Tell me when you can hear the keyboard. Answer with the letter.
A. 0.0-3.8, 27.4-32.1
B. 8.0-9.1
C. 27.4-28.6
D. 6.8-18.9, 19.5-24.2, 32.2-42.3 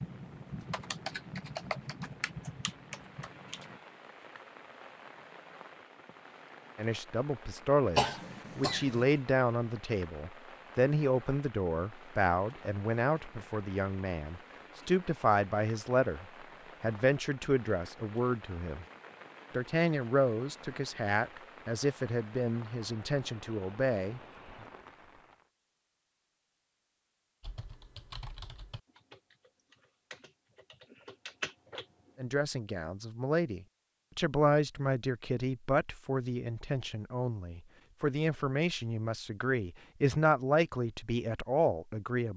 A.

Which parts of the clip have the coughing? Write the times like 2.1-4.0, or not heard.
8.0-9.1.